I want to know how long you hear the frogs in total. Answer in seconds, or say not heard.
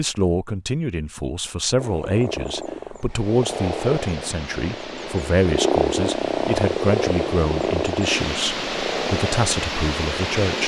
9 s.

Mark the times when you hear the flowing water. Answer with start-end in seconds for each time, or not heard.
3.0-10.6.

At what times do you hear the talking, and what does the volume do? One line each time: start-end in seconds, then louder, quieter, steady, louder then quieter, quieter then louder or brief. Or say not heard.
0.0-10.6 steady.